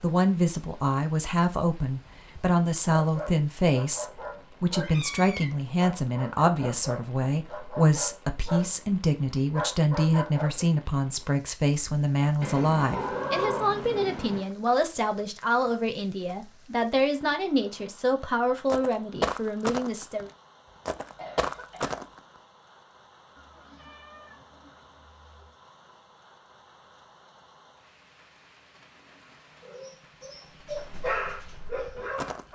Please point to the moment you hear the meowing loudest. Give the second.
13 s.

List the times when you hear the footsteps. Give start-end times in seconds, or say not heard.
18.6-22.2, 30.6-32.5.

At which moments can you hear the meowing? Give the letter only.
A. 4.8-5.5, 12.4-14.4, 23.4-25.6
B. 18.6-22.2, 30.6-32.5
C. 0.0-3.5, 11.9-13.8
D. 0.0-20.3
A.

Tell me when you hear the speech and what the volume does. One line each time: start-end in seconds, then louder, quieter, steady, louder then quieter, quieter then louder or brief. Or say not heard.
0.0-20.3 steady.